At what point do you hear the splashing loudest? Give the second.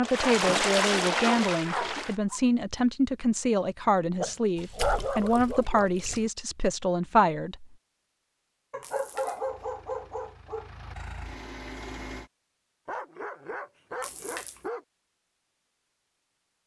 1 s.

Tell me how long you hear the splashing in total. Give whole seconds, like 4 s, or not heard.
5 s.